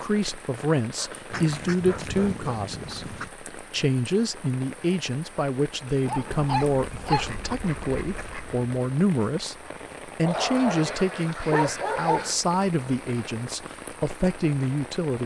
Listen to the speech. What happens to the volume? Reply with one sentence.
The volume of the speech stays about the same.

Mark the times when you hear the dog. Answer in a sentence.
You can hear the dog from 0.9 to 2.5 s, from 6.0 to 7.5 s and from 10.2 to 12.4 s.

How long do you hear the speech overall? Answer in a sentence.
The speech can be heard for 15 seconds in total.